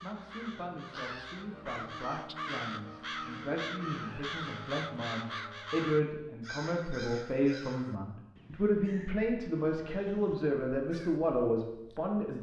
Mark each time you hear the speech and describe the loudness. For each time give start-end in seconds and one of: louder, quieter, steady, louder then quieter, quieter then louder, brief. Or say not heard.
0.0-12.3 louder.